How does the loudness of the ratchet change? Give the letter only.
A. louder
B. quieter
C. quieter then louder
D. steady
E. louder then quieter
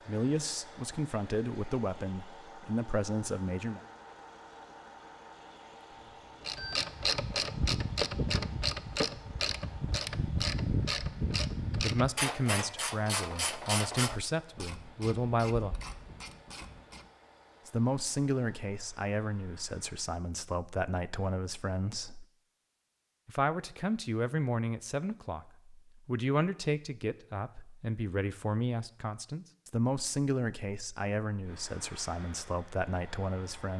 B.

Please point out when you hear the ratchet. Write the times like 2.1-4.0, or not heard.
6.5-17.1.